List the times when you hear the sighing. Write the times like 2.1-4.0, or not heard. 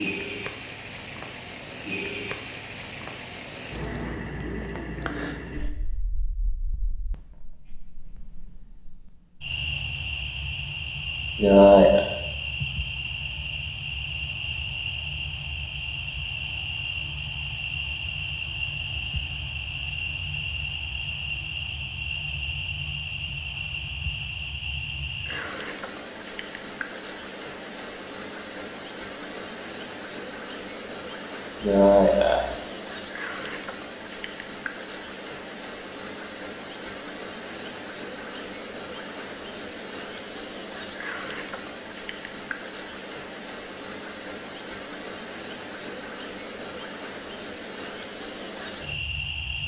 11.3-12.0, 31.6-32.5.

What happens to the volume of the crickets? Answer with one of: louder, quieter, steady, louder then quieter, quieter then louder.
steady.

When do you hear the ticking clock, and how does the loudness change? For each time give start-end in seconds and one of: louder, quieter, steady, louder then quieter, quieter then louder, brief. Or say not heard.
not heard.